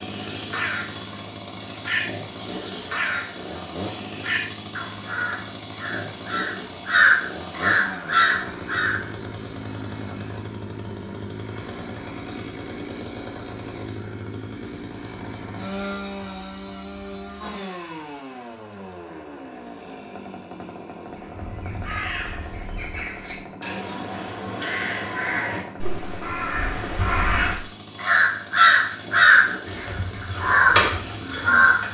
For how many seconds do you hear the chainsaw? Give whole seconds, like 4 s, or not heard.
32 s.